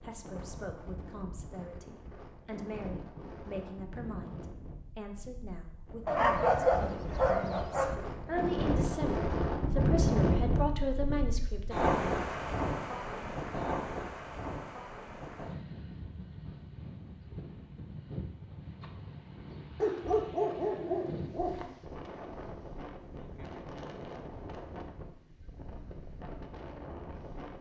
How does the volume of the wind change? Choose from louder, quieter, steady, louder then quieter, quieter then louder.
louder then quieter.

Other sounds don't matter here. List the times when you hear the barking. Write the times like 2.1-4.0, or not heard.
6.0-8.0, 19.8-21.8.